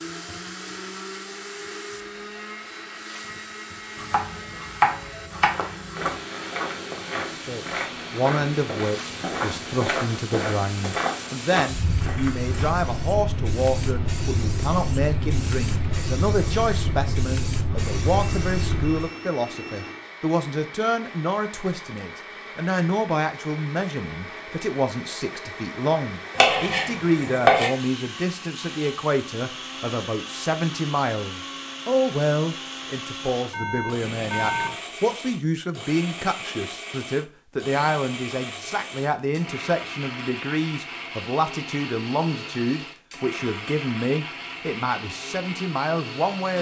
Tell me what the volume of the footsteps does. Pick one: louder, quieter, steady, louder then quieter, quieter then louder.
steady.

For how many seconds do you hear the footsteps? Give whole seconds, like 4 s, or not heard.
7 s.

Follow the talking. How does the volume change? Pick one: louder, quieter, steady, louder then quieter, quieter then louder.
steady.